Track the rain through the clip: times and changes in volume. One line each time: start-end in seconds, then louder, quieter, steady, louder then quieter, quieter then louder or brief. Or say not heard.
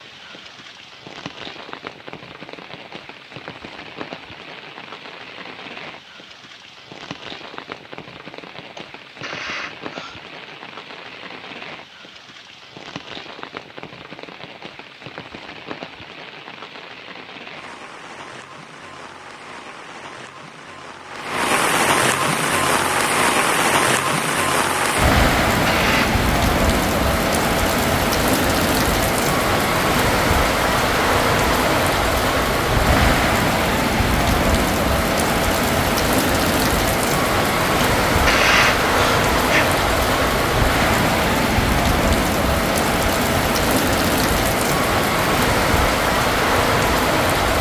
0.0-47.5 louder.